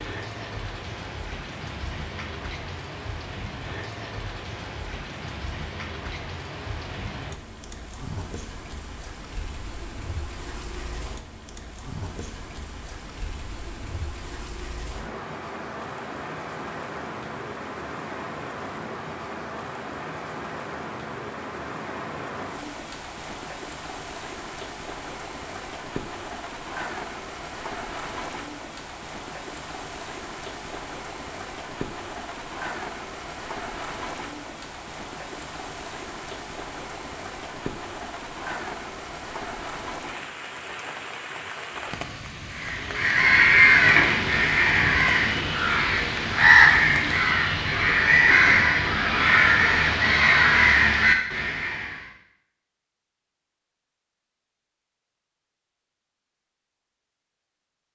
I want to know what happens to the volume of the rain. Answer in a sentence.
The volume of the rain stays about the same.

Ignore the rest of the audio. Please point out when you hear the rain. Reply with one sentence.
You can hear the rain from 0.0 to 47.4 s.